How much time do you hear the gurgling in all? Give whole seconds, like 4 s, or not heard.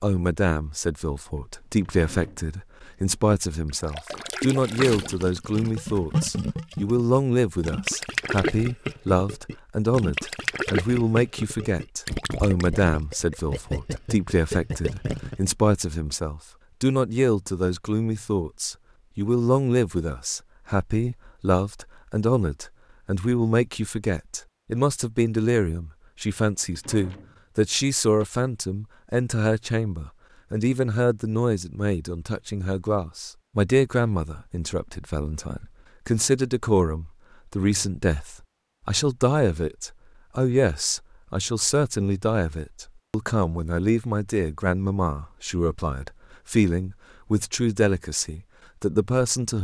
12 s.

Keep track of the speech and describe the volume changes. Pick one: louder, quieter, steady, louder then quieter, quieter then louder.
steady.